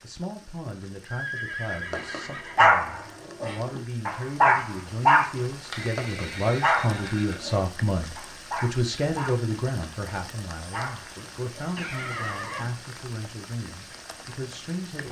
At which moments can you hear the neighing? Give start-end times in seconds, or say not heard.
1.1-2.8, 5.7-7.5, 11.2-12.8.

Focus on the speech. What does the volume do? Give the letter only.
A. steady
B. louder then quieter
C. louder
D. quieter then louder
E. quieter
B.